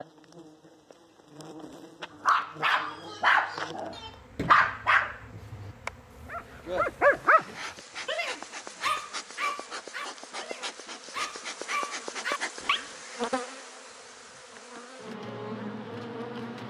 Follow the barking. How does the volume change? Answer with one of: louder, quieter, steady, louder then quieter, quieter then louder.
quieter.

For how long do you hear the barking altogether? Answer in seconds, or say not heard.
11 s.